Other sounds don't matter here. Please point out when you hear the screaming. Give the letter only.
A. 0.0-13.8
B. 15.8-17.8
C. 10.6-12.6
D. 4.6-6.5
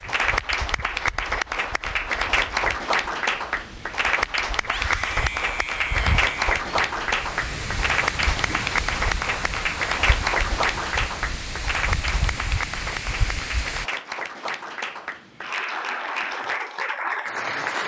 D.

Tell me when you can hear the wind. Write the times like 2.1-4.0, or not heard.
0.0-13.8.